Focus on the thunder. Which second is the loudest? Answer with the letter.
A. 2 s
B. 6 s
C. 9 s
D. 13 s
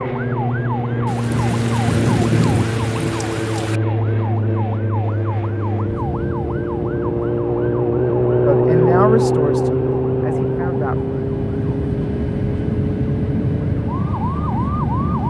A.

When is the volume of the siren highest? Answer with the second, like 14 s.
9 s.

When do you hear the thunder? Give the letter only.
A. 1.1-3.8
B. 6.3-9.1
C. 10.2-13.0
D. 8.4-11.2
A.